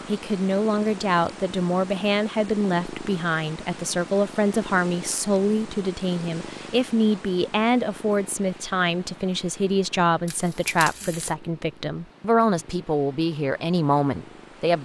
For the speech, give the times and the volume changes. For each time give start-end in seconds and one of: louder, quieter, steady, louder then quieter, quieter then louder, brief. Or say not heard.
0.1-14.7 steady.